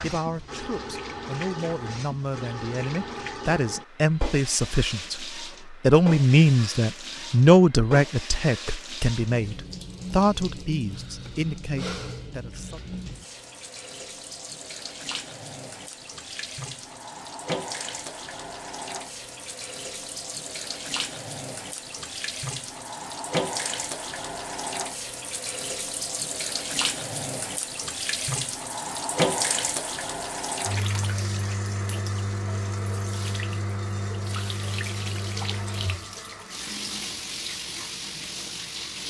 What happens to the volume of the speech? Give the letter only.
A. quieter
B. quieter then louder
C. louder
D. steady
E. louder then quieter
E.